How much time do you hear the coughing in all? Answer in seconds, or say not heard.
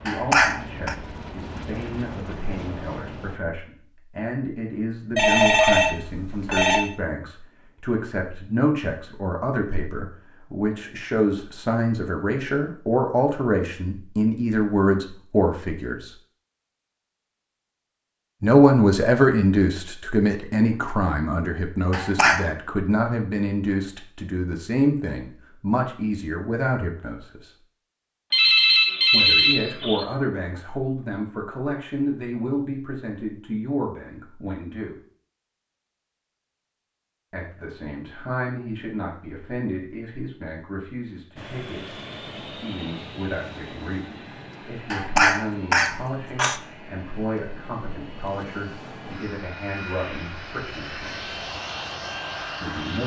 3 s.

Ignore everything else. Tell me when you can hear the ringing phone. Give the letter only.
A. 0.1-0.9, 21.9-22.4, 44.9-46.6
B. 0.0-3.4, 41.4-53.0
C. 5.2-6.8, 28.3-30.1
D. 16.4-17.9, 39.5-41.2
C.